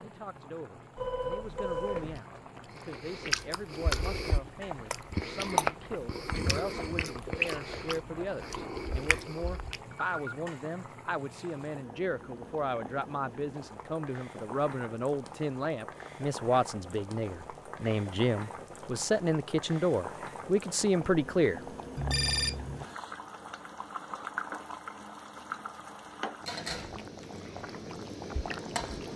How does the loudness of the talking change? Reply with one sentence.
The volume of the talking goes up.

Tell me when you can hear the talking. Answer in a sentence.
You can hear the talking from 0.0 to 21.6 s.